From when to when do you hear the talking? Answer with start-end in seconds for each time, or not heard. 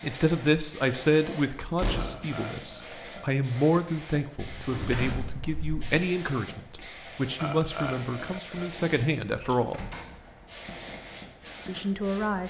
0.0-9.8, 11.7-12.4.